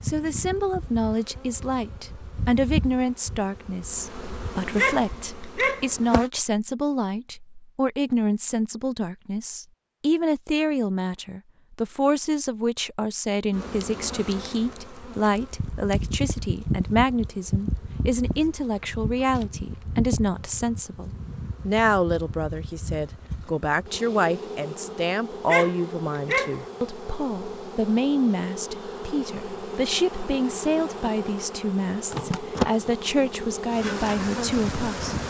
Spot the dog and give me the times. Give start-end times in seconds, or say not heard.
4.8-5.9, 25.4-26.6.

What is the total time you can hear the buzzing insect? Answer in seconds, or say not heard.
28 s.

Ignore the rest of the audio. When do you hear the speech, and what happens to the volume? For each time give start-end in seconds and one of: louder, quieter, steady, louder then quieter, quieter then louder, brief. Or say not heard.
0.0-35.2 steady.